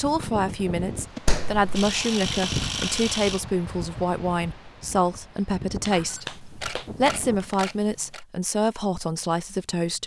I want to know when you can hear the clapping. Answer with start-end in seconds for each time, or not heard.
1.2-1.9, 5.8-7.5.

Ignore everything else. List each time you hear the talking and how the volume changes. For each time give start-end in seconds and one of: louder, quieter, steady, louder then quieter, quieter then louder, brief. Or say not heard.
0.0-10.0 steady.